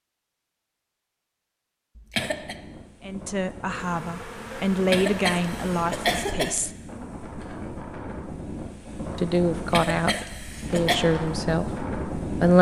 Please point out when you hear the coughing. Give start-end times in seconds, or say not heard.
1.9-2.5, 4.7-6.5, 9.6-11.0.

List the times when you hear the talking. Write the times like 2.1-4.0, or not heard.
3.0-6.7, 9.2-12.5.